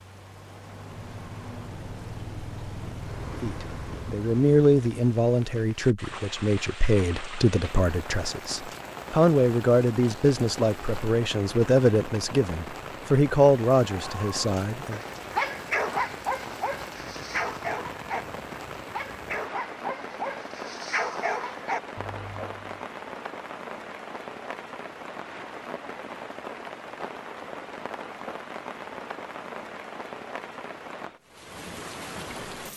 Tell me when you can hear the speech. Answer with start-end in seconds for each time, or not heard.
3.4-15.0.